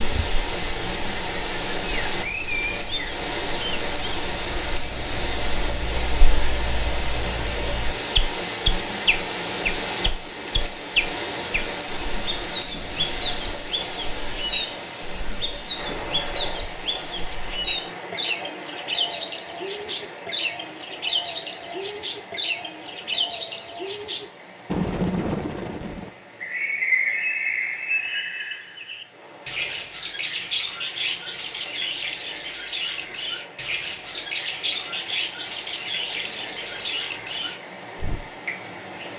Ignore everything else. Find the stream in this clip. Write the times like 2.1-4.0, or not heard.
0.0-39.1.